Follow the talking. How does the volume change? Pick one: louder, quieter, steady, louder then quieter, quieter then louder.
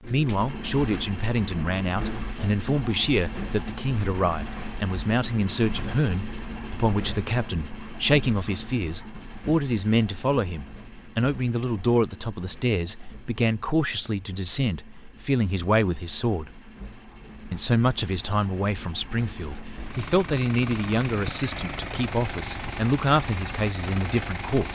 steady.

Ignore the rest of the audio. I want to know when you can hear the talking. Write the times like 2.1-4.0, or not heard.
0.0-16.5, 17.5-24.7.